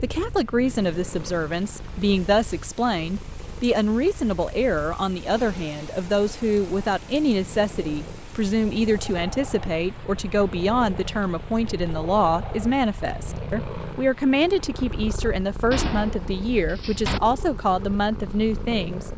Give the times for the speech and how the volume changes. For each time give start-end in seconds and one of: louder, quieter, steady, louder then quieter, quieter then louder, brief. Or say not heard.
0.0-19.1 steady.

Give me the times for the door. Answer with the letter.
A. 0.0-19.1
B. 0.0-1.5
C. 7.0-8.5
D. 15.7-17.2
D.